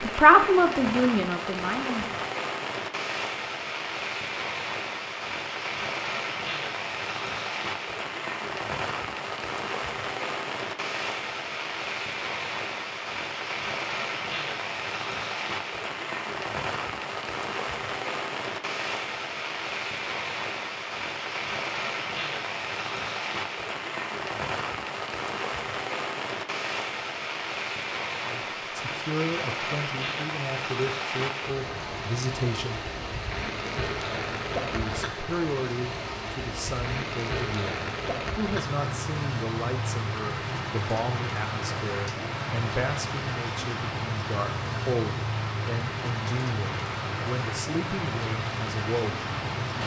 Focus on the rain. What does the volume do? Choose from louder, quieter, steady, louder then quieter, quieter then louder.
steady.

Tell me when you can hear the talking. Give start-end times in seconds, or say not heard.
0.0-2.3, 28.2-32.9, 34.7-49.8.